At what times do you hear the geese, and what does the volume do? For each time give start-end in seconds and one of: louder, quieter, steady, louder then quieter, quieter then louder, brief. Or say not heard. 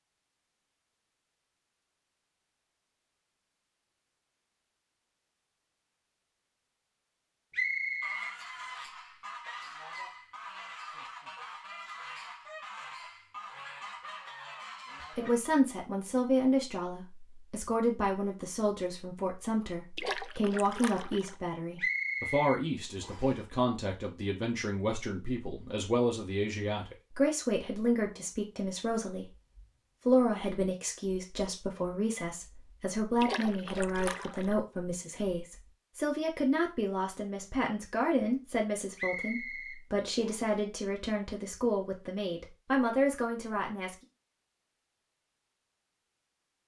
8.0-15.4 steady.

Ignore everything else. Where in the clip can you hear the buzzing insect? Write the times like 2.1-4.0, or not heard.
not heard.